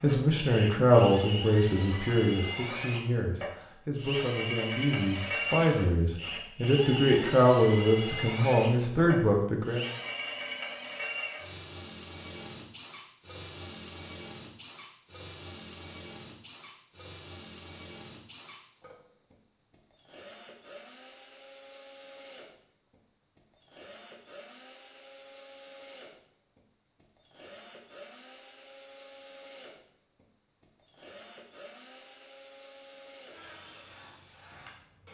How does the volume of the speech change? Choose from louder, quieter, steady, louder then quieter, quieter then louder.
quieter then louder.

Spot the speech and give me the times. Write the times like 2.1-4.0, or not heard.
0.0-9.8.